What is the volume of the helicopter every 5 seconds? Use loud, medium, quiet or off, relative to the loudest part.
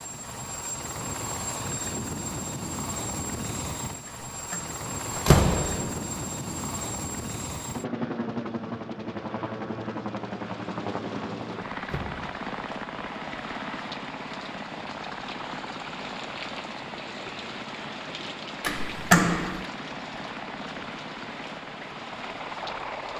loud, loud, loud, medium, medium.